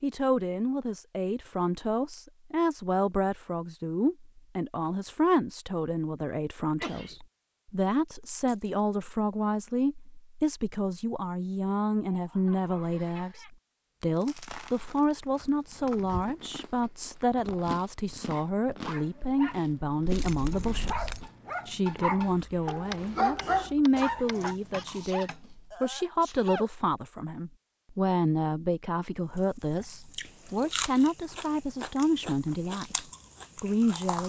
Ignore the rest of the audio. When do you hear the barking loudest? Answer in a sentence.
The loudest moment of the barking is at 23 seconds.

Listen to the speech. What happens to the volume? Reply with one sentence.
The volume of the speech stays about the same.